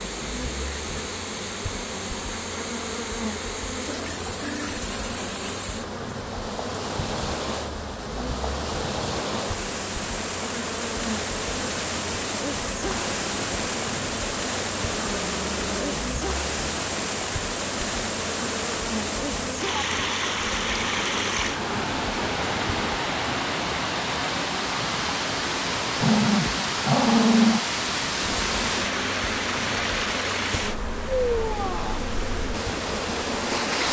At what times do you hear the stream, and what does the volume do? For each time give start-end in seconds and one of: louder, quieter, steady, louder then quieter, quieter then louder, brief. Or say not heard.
0.0-33.8 louder.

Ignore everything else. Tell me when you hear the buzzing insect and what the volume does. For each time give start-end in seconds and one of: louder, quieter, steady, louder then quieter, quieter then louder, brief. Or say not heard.
0.0-22.9 steady
28.2-33.8 steady.